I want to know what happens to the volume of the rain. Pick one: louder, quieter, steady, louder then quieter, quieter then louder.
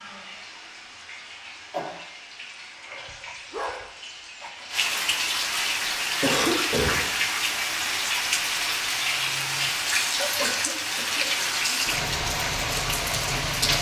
louder.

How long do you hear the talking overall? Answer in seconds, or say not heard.
not heard.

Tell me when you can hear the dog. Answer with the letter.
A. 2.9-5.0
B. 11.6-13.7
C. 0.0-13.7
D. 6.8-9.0
A.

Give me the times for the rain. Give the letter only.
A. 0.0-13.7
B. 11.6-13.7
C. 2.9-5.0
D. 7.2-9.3
A.